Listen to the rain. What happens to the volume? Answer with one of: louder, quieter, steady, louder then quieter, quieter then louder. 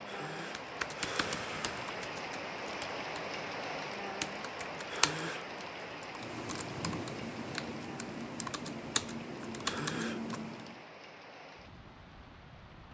quieter.